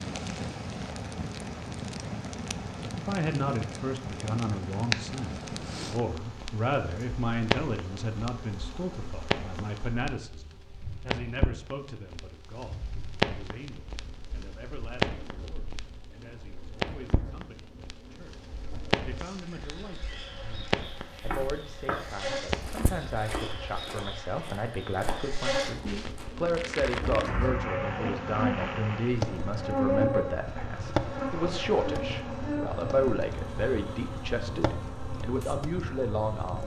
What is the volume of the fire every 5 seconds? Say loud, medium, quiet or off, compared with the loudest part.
loud, loud, loud, loud, loud, loud, loud, medium.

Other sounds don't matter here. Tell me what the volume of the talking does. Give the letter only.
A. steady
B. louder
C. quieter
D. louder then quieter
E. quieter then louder
E.